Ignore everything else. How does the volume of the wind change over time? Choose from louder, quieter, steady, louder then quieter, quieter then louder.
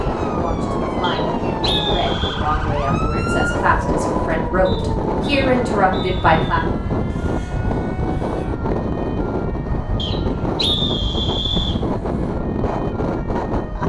steady.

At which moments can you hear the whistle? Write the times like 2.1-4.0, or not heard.
1.0-2.4, 4.7-6.7, 9.9-11.8.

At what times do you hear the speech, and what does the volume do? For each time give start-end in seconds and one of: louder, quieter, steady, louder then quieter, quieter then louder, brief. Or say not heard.
0.0-6.7 louder.